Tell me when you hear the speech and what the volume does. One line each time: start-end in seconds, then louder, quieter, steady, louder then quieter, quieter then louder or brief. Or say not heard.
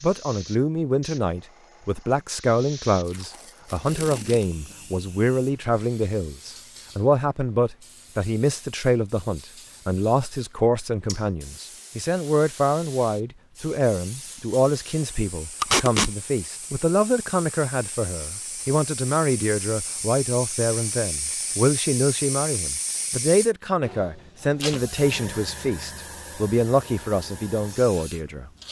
0.0-28.6 steady.